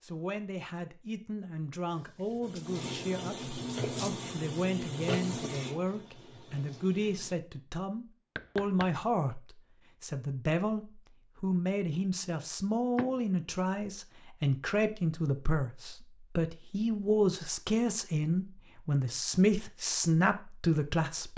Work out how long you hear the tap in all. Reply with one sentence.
You can hear the tap for 5 seconds altogether.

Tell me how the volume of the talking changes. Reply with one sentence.
The volume of the talking goes up.